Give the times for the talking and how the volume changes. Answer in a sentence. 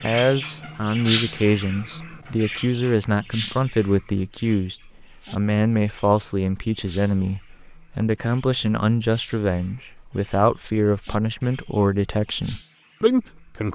The talking can be heard from 0.0 to 13.7 s, at a steady volume.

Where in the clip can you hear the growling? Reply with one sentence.
You can't hear the growling here.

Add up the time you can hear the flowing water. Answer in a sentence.
You can't hear the flowing water here.